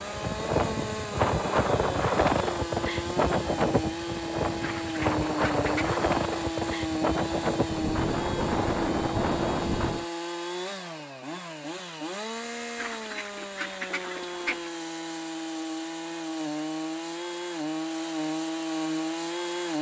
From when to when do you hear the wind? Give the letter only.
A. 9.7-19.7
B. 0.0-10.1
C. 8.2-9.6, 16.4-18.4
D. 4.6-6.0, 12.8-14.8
B.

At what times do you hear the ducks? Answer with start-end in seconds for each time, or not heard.
4.6-6.0, 12.8-14.8.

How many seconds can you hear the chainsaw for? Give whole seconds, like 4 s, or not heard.
20 s.